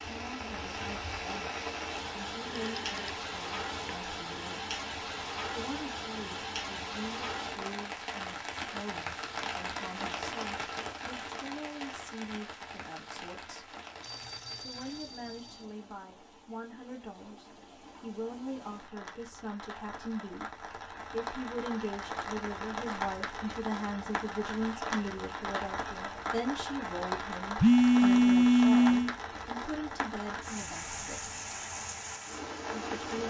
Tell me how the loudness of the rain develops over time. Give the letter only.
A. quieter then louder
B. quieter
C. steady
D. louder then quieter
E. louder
A.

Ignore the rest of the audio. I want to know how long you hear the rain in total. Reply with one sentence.
You can hear the rain for 33 seconds altogether.